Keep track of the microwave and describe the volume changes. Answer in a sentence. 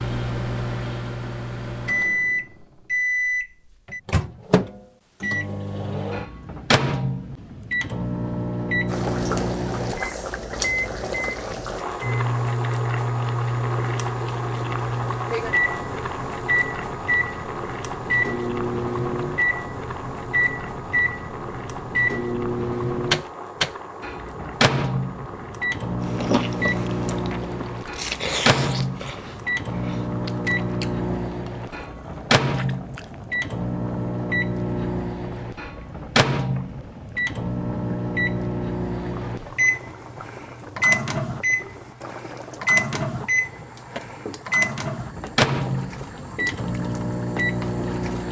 The loudness of the microwave stays about the same.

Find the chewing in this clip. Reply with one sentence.
You can hear the chewing from 26.0 to 33.2 s.